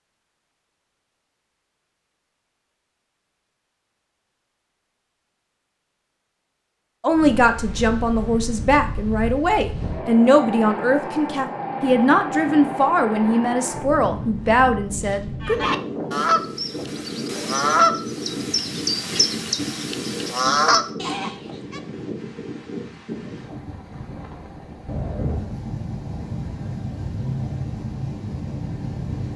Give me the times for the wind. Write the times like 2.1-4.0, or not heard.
7.1-29.3.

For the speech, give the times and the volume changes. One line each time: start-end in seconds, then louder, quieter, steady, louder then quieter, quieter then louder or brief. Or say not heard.
7.0-15.6 steady.